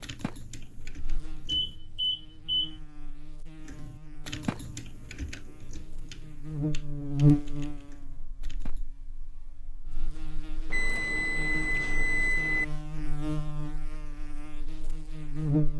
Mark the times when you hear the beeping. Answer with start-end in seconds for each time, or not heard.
1.4-2.8, 10.7-12.7.